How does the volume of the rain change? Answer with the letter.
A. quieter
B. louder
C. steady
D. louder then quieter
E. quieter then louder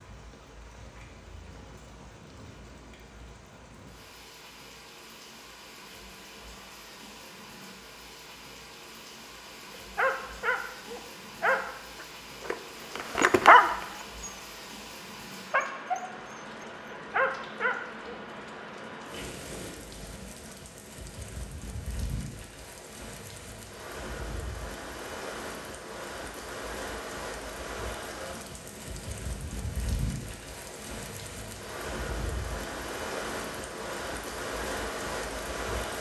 B.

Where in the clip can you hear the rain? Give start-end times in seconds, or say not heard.
0.0-35.9.